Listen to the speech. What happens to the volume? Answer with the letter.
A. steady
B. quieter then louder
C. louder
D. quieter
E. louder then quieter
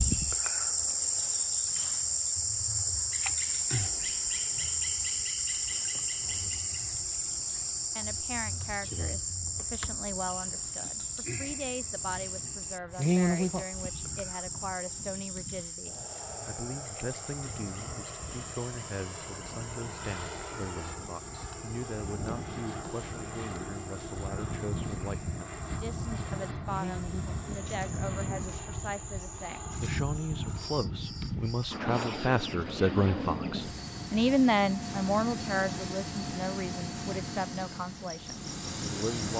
C.